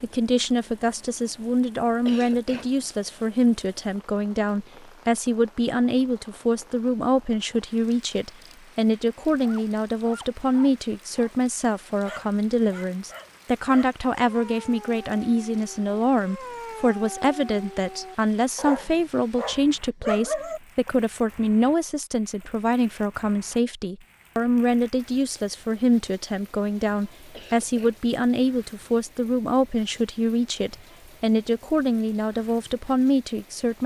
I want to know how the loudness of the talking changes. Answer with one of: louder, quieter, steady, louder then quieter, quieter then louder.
steady.